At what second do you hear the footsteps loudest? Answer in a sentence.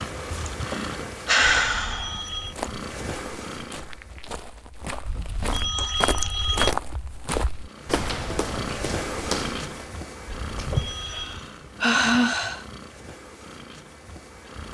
The loudest moment of the footsteps is at 7 seconds.